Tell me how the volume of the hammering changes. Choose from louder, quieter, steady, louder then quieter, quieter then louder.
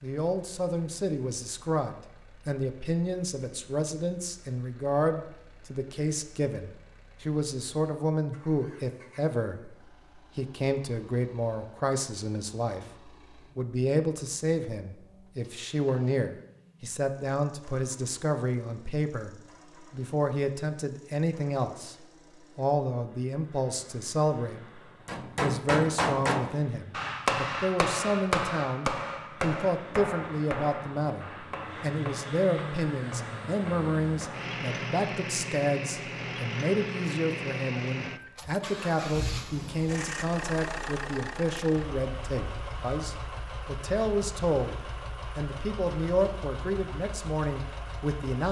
quieter.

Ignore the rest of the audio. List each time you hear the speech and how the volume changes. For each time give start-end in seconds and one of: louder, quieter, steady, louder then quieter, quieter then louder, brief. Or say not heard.
0.0-9.8 steady
10.3-21.9 steady
22.6-48.4 steady.